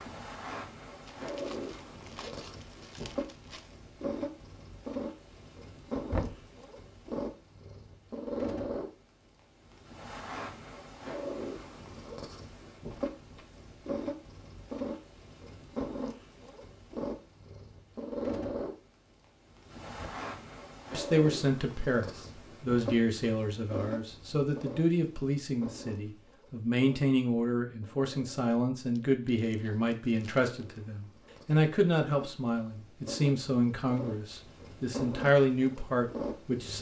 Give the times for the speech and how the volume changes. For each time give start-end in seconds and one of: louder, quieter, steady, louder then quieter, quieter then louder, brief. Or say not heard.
20.9-36.7 steady.